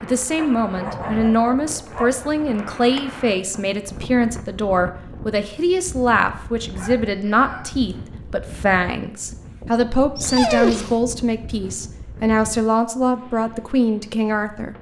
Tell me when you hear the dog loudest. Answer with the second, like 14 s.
11 s.